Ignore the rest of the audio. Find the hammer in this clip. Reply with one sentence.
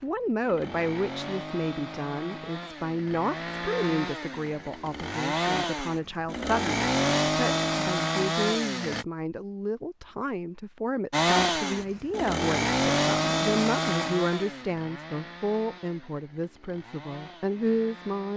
The hammer can't be heard in this clip.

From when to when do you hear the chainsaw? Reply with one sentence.
The chainsaw can be heard from 0.0 to 9.1 s and from 11.1 to 18.3 s.